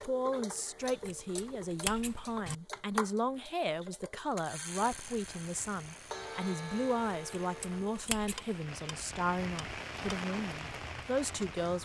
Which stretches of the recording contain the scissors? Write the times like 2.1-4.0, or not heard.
0.8-2.5, 7.1-8.6.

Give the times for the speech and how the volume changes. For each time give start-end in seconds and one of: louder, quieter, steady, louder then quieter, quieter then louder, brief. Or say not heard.
0.0-11.8 steady.